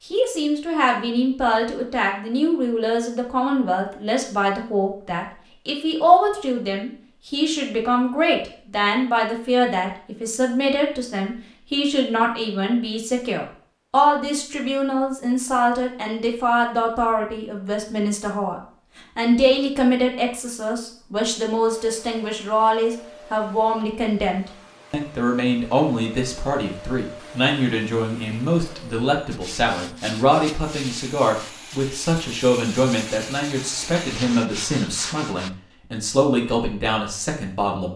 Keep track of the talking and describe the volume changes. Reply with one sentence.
The loudness of the talking stays about the same.